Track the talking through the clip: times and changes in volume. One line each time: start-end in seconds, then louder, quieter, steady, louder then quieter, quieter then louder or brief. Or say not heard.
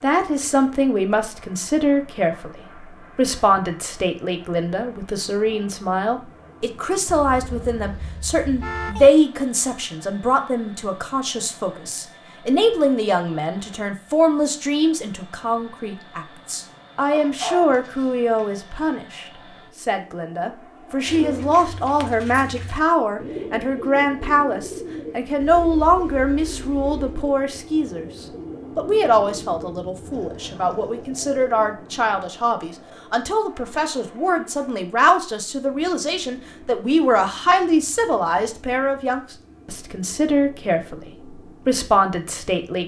0.0-42.8 steady.